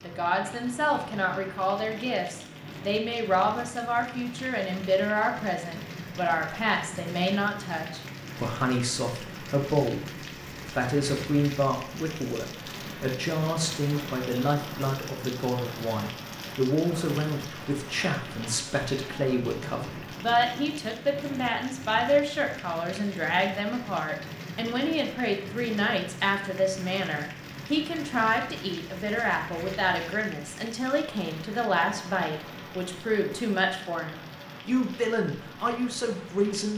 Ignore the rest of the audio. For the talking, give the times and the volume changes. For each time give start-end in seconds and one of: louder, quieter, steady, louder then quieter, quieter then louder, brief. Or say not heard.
0.0-10.1 steady
10.7-36.7 steady.